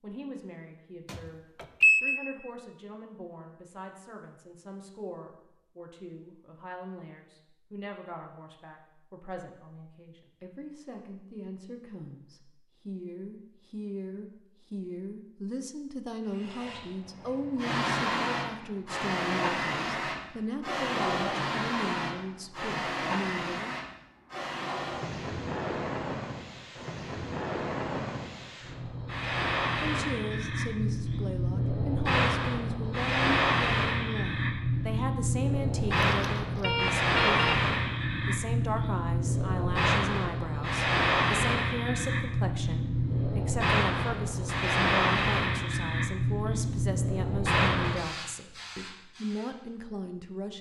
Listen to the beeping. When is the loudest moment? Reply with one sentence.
The volume of the beeping peaks at 2 seconds.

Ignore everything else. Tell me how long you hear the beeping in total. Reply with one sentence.
The beeping can be heard for 3 seconds in total.